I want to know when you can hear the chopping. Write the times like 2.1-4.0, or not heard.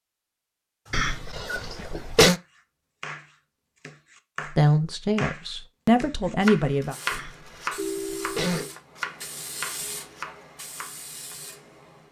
0.8-11.3.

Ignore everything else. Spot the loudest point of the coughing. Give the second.
2 s.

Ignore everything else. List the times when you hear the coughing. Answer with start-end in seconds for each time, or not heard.
0.9-2.4, 7.1-8.7.